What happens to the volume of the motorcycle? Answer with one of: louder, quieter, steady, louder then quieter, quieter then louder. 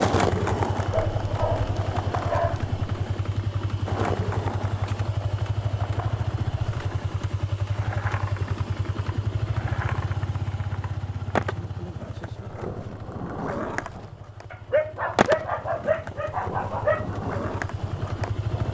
quieter.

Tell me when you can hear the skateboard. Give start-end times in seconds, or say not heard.
0.0-18.6.